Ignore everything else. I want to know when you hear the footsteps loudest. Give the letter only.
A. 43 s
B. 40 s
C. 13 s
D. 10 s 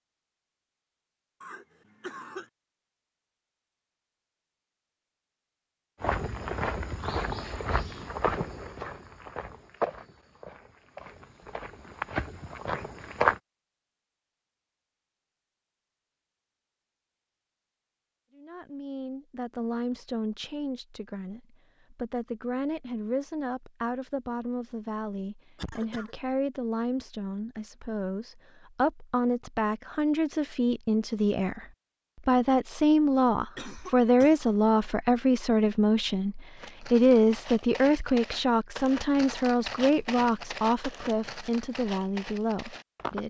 C.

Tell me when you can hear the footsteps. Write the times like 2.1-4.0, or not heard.
6.0-13.4, 36.5-43.2.